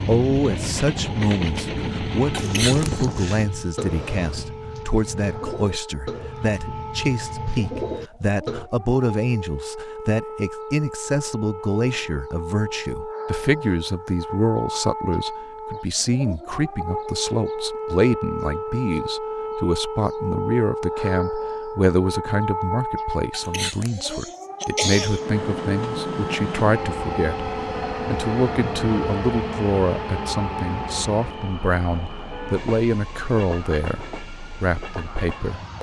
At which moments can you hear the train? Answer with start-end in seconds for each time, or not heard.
0.0-4.5, 25.1-35.7.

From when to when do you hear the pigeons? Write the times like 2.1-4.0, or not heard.
2.4-8.7.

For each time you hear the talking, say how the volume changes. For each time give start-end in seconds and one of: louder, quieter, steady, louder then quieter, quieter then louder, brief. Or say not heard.
0.1-35.7 steady.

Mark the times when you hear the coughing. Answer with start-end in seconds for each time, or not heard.
2.4-3.0, 23.3-25.2.